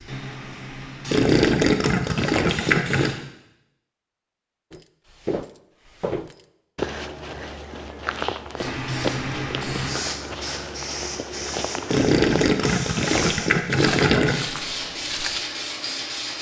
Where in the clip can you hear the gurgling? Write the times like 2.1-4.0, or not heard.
1.1-3.1, 11.8-14.4.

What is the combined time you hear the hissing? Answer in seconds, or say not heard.
11 s.